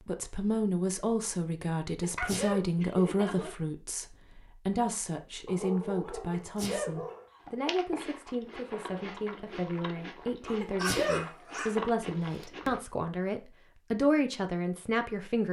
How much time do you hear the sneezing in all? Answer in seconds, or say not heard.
2 s.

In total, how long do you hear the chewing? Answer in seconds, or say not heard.
5 s.